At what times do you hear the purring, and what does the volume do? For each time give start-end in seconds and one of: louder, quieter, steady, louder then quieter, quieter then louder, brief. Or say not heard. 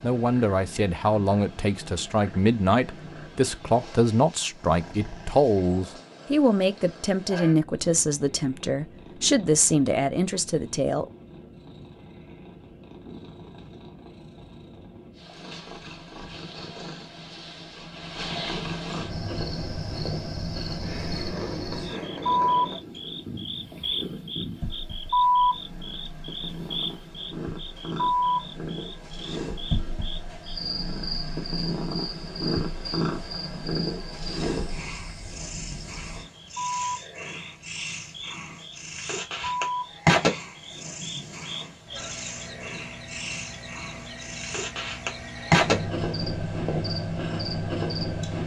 0.0-48.4 louder.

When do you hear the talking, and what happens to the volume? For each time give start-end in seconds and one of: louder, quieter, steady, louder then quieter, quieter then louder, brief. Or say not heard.
0.0-11.1 steady.